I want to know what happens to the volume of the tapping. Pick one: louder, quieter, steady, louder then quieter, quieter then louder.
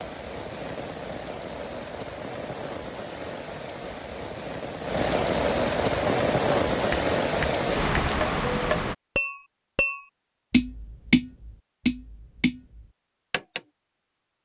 louder then quieter.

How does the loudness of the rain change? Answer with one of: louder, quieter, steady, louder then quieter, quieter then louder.
louder.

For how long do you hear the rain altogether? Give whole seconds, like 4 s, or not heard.
9 s.